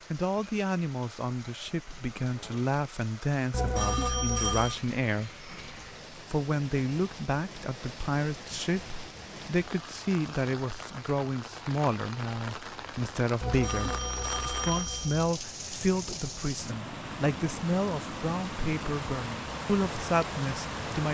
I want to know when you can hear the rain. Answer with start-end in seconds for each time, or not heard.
0.0-21.0.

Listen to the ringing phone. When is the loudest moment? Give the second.
4 s.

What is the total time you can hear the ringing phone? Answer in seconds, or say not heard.
3 s.